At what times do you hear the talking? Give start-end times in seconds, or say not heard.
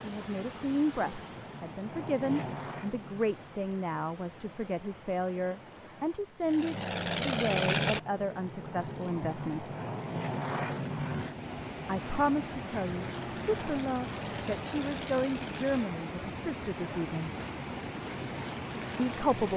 0.0-9.7, 11.8-17.3, 18.9-19.5.